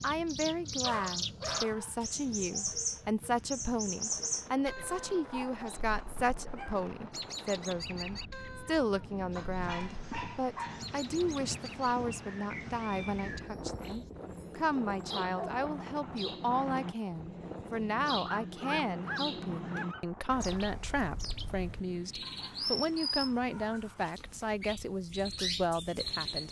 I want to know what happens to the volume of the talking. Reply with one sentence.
The volume of the talking stays about the same.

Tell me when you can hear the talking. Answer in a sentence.
You can hear the talking from 0.0 to 26.4 s.